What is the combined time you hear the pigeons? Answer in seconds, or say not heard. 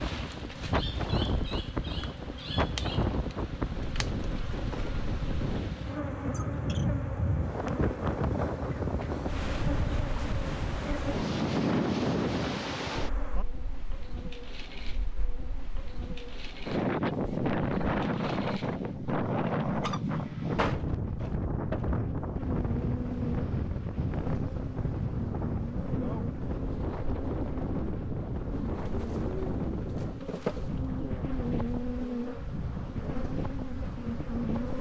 2 s.